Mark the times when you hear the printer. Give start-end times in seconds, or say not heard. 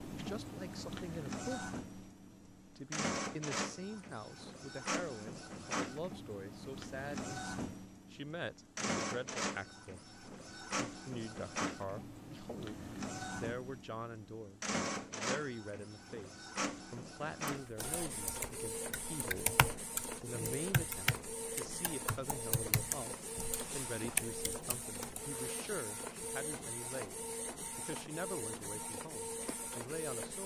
0.0-30.4.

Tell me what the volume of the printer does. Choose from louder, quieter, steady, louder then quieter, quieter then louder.
steady.